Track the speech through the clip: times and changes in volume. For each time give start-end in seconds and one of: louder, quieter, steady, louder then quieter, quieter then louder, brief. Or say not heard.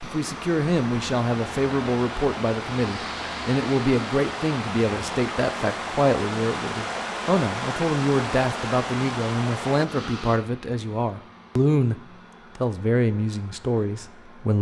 0.0-14.5 steady.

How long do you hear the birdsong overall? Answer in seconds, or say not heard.
not heard.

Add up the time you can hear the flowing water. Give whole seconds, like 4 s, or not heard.
10 s.